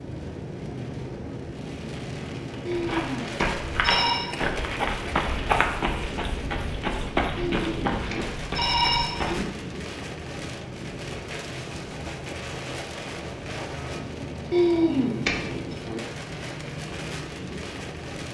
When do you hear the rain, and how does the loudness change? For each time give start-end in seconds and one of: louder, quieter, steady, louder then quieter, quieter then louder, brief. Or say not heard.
0.0-18.2 steady.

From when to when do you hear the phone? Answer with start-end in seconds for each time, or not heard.
2.6-4.2, 7.4-9.1, 14.5-15.3.